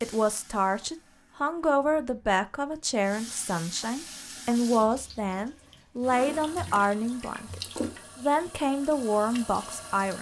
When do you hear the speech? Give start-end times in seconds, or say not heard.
0.0-10.1.